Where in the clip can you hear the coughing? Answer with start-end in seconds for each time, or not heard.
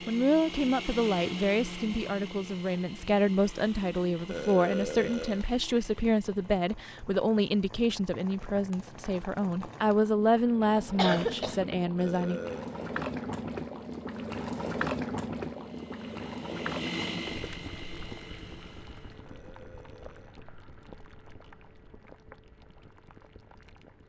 10.8-11.7.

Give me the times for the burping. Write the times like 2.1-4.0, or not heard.
4.2-5.5, 11.9-12.8, 19.2-20.4.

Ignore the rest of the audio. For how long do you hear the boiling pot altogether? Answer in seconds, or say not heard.
24 s.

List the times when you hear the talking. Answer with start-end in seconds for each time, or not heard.
0.1-12.4.